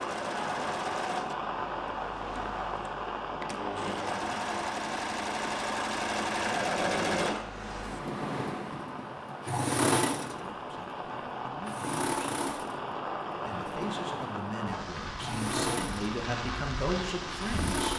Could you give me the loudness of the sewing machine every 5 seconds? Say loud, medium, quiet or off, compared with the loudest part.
medium, loud, medium, loud.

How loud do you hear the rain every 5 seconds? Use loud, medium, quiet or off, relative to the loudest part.
loud, medium, loud, loud.